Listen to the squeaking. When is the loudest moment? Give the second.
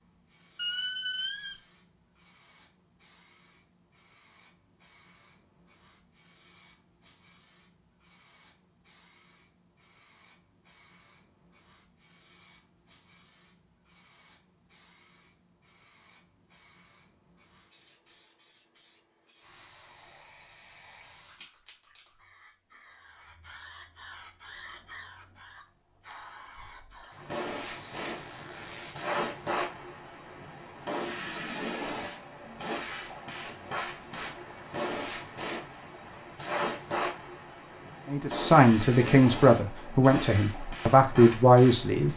1 s.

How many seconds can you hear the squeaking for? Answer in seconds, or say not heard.
2 s.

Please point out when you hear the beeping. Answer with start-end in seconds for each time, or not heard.
not heard.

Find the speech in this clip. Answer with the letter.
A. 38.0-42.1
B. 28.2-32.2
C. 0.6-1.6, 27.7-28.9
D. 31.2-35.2
A.